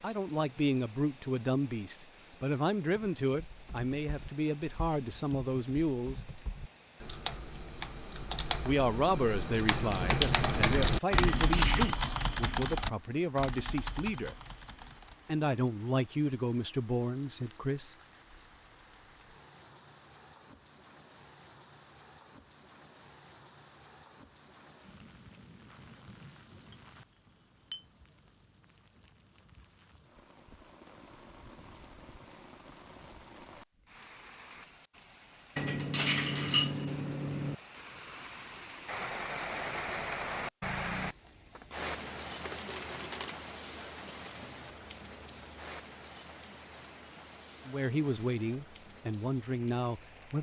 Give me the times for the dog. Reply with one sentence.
The dog can't be heard in this clip.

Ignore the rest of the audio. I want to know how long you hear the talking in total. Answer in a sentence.
You can hear the talking for 17 seconds altogether.